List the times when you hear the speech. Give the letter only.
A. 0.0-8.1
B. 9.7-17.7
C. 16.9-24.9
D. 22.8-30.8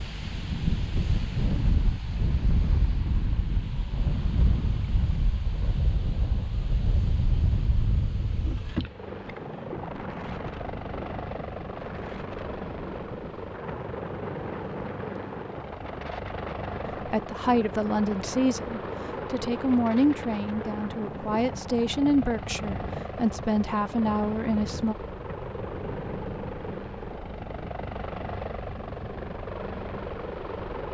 C.